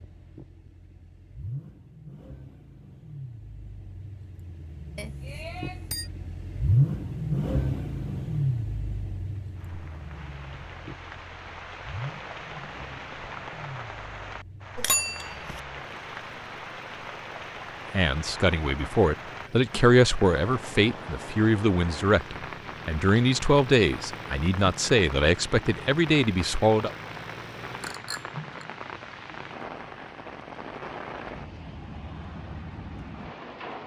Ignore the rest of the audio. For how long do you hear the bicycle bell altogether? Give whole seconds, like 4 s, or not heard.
3 s.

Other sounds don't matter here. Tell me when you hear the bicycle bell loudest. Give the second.
15 s.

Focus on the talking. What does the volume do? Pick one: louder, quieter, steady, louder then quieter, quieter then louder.
steady.